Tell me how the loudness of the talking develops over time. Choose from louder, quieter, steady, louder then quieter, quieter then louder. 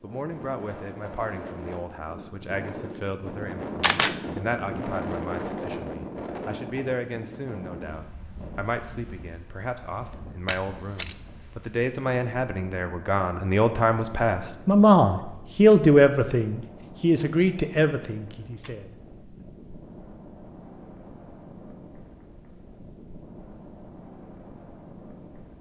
louder.